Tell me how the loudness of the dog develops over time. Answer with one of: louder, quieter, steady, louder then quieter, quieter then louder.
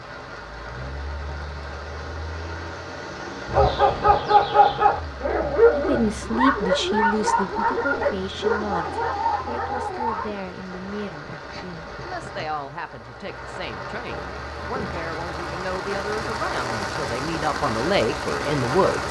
quieter.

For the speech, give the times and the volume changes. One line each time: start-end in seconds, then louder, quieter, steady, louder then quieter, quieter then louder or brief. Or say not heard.
5.7-19.0 quieter then louder.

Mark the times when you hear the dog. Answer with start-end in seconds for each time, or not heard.
3.5-10.3.